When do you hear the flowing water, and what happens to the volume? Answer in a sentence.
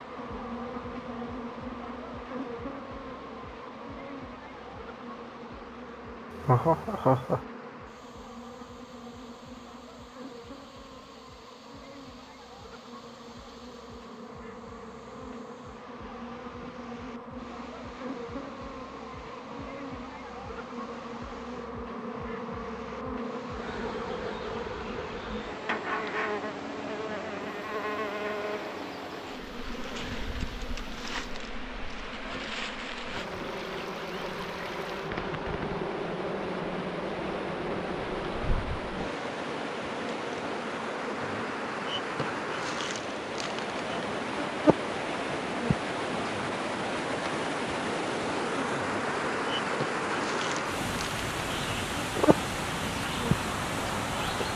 The flowing water can be heard from 0.0 to 54.5 s, getting louder.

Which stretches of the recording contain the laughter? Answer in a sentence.
The laughter can be heard from 6.3 to 7.4 s.